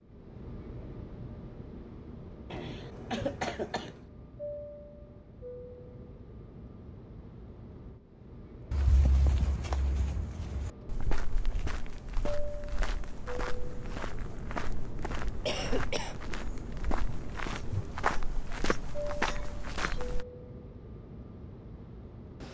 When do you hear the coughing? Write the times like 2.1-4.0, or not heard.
2.5-4.0, 14.9-16.6.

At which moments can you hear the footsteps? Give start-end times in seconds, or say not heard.
8.7-20.2.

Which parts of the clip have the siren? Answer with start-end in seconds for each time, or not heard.
not heard.